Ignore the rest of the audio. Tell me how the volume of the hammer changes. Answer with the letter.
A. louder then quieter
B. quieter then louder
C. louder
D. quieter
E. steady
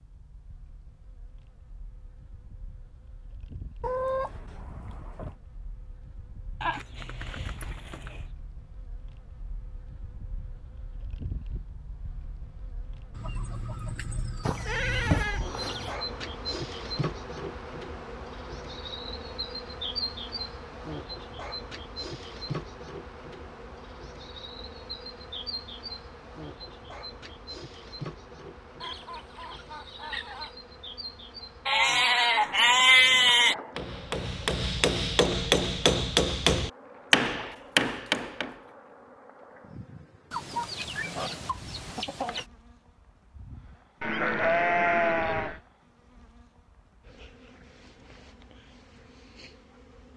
C.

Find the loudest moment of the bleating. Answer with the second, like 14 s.
33 s.